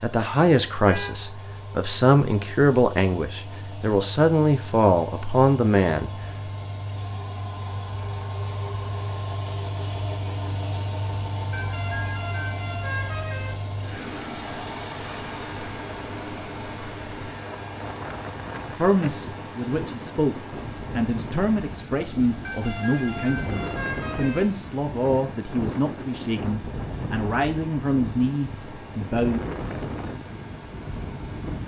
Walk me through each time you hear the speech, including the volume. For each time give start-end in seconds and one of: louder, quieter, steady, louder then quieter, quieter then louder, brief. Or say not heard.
0.0-6.1 steady
18.6-29.4 steady.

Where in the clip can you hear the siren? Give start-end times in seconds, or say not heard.
not heard.